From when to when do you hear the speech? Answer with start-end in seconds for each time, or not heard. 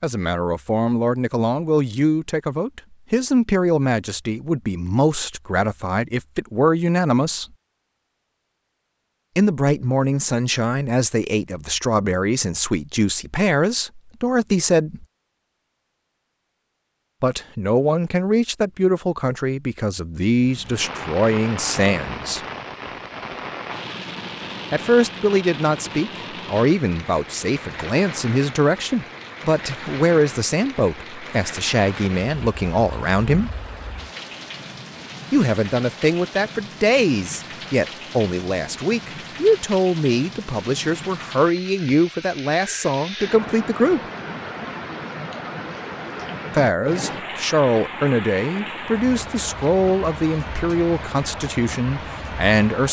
0.0-7.5, 9.3-15.1, 17.2-22.4, 24.7-33.5, 35.3-44.0, 46.5-52.8.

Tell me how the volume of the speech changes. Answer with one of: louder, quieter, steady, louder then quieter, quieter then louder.
steady.